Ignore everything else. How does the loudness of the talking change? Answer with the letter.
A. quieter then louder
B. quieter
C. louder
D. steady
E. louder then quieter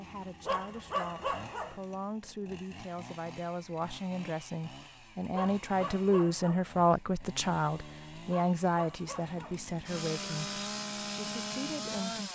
E.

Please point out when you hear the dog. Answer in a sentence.
You can hear the dog from 0.5 to 1.8 s, from 5.3 to 6.7 s and from 8.2 to 9.6 s.